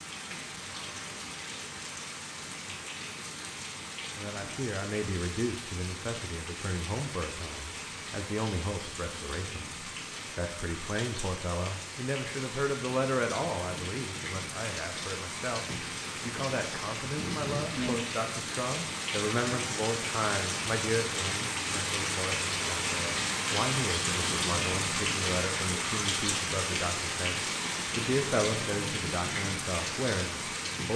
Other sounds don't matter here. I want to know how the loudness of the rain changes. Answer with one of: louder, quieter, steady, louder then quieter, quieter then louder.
louder.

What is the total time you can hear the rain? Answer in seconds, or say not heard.
31 s.